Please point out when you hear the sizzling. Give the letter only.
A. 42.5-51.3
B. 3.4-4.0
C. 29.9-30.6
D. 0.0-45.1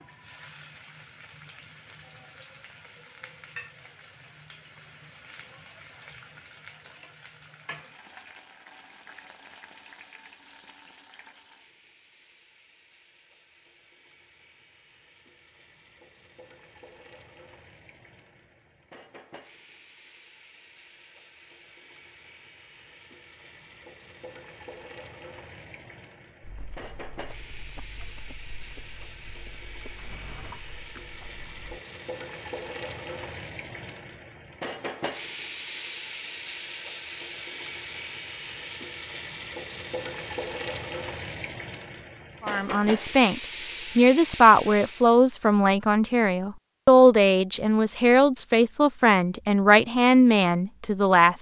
D.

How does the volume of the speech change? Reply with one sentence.
The loudness of the speech stays about the same.